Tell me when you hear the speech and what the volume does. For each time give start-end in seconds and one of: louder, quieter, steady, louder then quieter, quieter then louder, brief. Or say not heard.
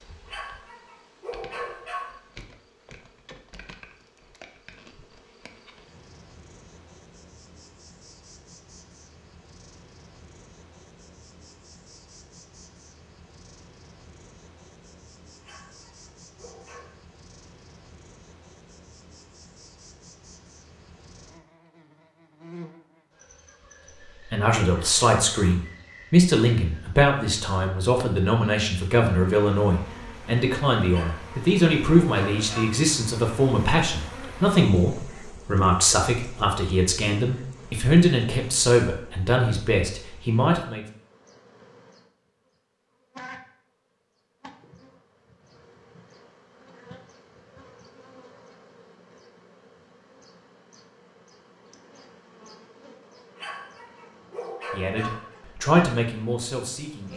24.3-40.8 steady
54.7-57.1 brief.